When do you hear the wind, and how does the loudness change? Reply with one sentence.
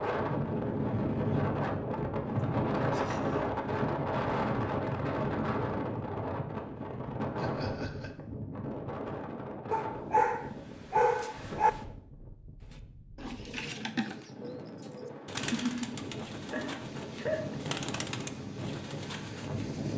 You can hear the wind from 0.0 to 19.9 s, getting quieter then louder.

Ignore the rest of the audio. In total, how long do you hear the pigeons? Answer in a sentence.
The pigeons can be heard for 7 seconds in total.